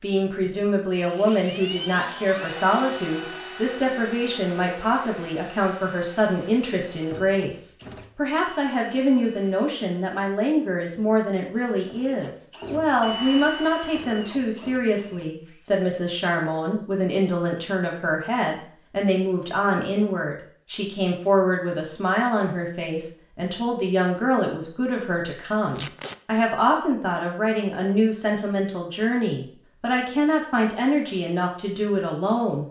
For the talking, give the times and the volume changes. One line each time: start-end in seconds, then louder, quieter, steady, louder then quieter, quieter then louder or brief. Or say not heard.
0.0-32.6 steady.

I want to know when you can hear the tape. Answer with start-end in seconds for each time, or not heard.
25.8-26.2.